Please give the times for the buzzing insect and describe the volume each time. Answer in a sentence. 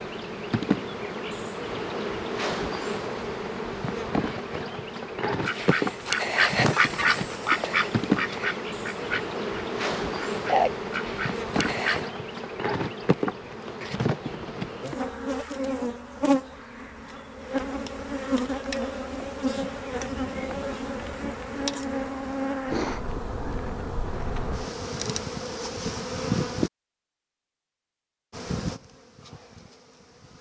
The buzzing insect can be heard from 0.0 to 26.7 s, at a steady volume; and briefly from 28.3 to 30.3 s.